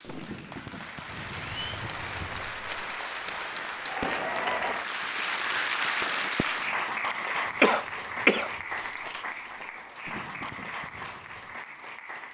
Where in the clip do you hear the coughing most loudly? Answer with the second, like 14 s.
8 s.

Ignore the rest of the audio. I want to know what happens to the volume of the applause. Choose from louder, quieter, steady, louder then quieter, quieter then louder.
louder then quieter.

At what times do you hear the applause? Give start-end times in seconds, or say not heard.
0.0-12.2.